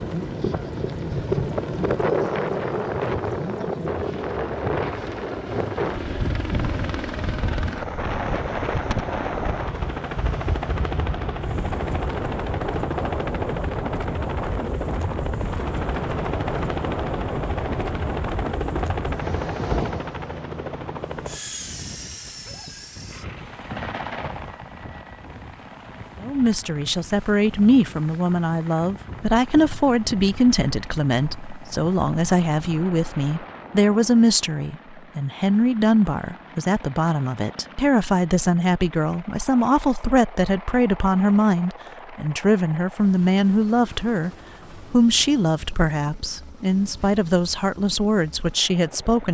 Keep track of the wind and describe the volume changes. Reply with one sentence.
The volume of the wind goes down.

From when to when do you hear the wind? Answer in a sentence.
The wind can be heard from 0.0 to 34.5 s.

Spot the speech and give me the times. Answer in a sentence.
You can hear the speech from 26.2 to 44.3 s and from 44.9 to 49.2 s.